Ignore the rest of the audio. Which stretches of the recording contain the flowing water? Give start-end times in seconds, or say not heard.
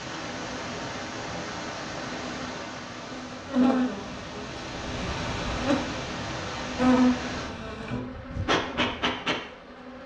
0.0-7.5.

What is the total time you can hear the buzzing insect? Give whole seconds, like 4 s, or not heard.
10 s.